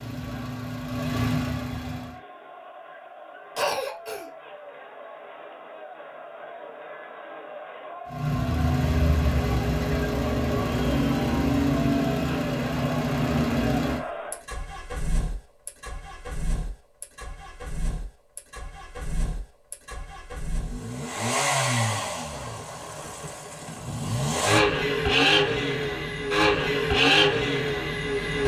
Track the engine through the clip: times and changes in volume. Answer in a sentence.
The engine can be heard briefly from 0.0 to 2.2 s; and from 8.1 to 28.4 s, getting quieter then louder.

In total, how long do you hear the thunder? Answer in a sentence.
The thunder can be heard for 2 seconds in total.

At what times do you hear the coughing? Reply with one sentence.
The coughing can be heard from 3.5 to 4.3 s.